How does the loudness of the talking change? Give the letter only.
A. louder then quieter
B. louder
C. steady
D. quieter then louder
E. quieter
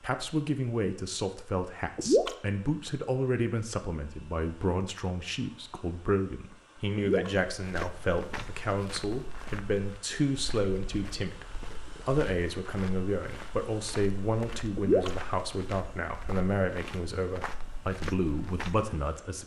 C.